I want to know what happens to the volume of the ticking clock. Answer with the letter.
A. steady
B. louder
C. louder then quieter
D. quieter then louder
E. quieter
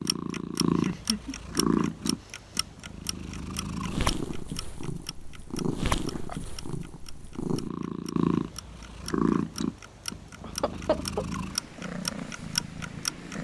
D.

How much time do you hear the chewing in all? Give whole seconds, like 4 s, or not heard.
not heard.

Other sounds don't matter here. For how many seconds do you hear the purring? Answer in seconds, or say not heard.
13 s.